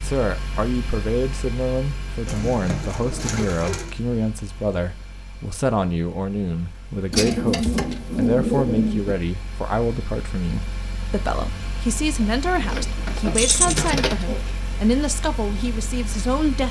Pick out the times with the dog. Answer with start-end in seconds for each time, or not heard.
not heard.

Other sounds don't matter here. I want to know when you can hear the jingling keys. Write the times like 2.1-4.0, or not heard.
13.3-13.9.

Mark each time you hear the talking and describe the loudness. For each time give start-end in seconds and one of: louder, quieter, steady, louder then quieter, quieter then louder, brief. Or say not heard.
0.0-16.6 steady.